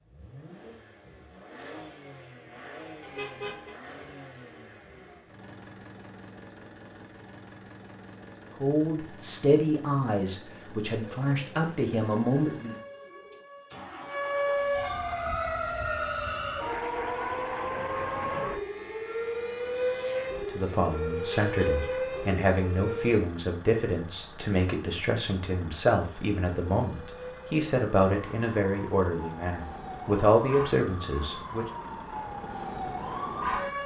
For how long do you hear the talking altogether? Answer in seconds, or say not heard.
15 s.